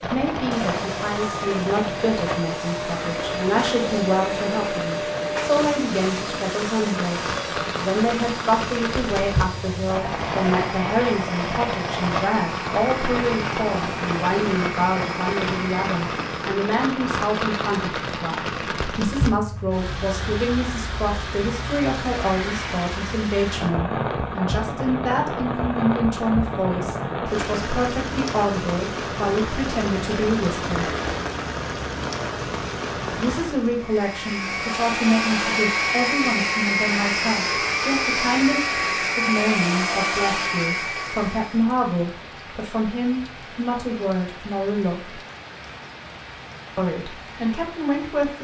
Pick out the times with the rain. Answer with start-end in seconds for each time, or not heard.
0.0-48.3.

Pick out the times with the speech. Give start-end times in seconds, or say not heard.
0.0-30.9, 33.1-45.2, 46.8-48.3.